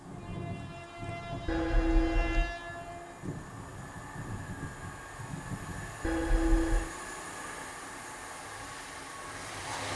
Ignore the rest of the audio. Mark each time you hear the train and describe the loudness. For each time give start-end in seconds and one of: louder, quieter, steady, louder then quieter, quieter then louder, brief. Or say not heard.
0.0-9.9 steady.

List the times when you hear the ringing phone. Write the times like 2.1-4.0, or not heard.
1.4-2.5, 6.0-6.9.